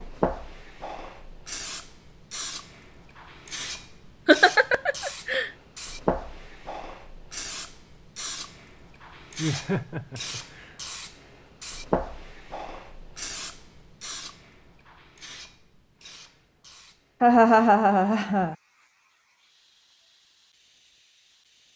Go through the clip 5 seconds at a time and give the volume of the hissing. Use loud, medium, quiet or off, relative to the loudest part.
loud, loud, loud, quiet, quiet.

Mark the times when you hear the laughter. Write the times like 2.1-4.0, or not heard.
4.2-5.5, 9.3-10.8, 17.2-18.6.